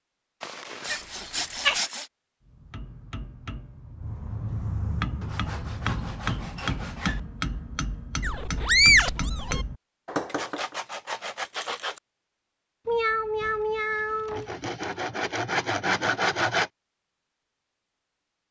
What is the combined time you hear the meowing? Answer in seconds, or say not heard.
4 s.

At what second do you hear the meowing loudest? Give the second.
9 s.